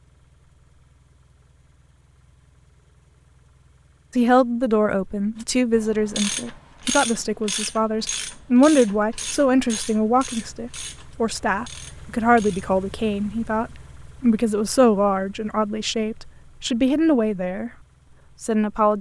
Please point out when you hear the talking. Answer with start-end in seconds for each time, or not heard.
4.2-17.7, 18.4-18.9.